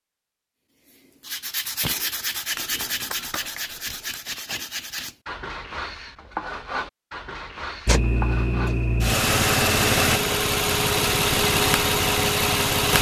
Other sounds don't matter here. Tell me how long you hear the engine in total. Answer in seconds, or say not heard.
5 s.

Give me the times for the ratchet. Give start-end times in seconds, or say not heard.
2.5-4.2.